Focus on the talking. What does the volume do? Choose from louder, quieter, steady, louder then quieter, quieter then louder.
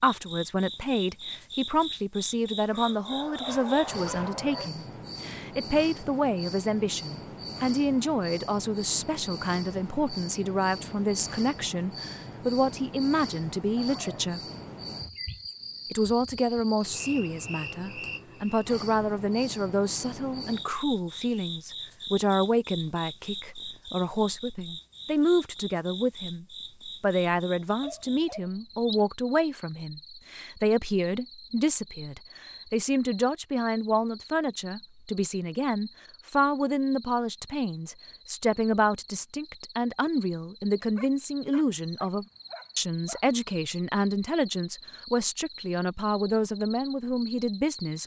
steady.